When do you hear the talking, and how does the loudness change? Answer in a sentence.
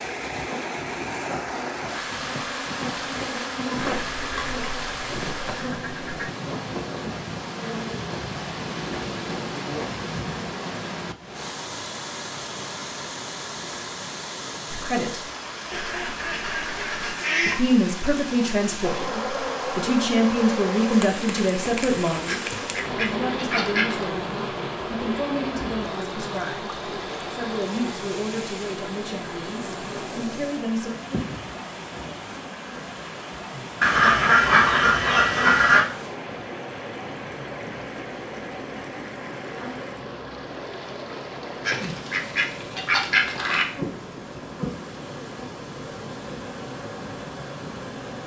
You can hear the talking briefly from 14.7 to 15.2 s; and from 17.4 to 30.9 s, getting quieter.